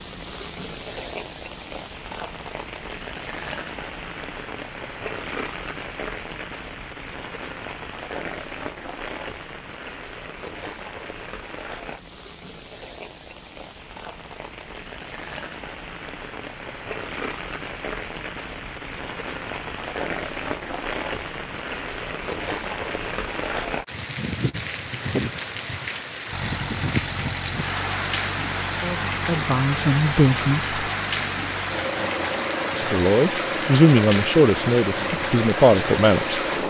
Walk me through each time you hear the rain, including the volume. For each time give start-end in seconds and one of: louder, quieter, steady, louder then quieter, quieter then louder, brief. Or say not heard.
0.0-36.6 louder.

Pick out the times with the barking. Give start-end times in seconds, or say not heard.
not heard.